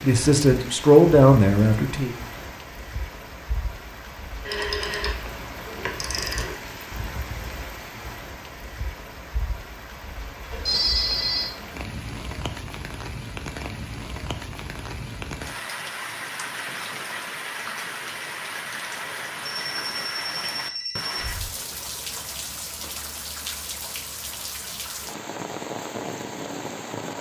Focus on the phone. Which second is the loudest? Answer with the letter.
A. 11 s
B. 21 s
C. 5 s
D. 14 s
A.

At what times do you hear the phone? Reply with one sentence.
The phone can be heard from 4.5 to 6.5 s, from 10.5 to 11.5 s and from 19.6 to 21.4 s.